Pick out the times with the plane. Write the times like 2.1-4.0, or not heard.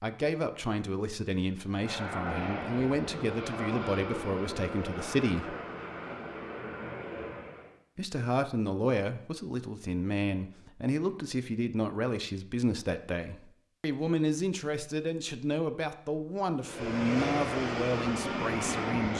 1.6-7.8, 16.6-19.1.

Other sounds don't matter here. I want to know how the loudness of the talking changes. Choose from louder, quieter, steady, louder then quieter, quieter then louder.
steady.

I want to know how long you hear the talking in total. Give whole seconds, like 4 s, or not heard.
17 s.